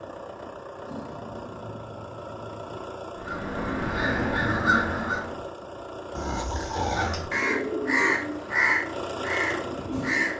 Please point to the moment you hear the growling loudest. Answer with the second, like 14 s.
7 s.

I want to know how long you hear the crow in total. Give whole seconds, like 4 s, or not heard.
6 s.